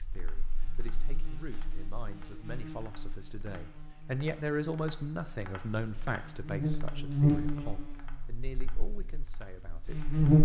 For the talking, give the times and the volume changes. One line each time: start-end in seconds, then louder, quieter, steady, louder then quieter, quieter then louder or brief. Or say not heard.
0.0-10.4 louder then quieter.